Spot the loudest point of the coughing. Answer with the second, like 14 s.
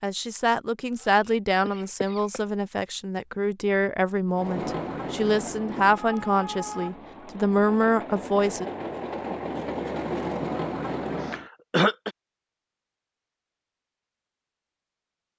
12 s.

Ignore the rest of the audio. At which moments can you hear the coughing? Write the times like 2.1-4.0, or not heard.
0.9-2.4, 11.2-12.2.